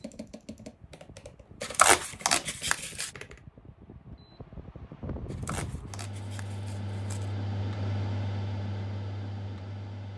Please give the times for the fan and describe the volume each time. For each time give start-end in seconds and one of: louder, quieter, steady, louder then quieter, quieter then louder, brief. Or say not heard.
0.0-10.1 louder.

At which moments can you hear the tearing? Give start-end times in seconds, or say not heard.
1.6-3.1, 5.3-7.3.